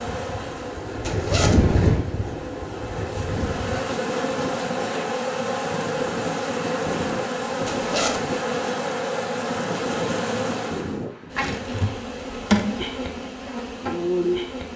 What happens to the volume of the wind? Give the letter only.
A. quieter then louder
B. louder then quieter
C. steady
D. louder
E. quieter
E.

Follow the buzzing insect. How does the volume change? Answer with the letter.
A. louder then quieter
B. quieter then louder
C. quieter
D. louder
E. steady
D.